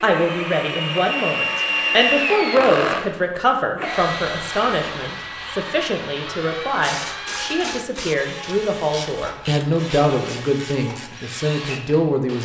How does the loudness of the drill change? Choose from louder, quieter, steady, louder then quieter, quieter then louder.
quieter.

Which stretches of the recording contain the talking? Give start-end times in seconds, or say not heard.
0.0-12.4.